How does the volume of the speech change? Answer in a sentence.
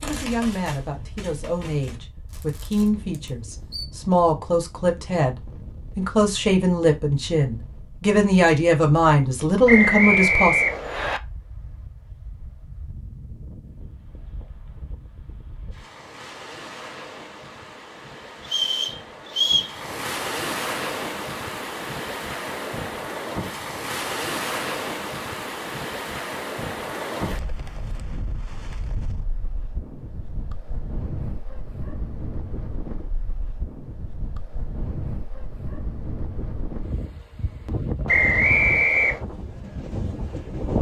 The loudness of the speech goes up.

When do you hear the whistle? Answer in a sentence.
You can hear the whistle from 9.7 to 11.2 s, from 18.4 to 19.7 s and from 38.0 to 39.2 s.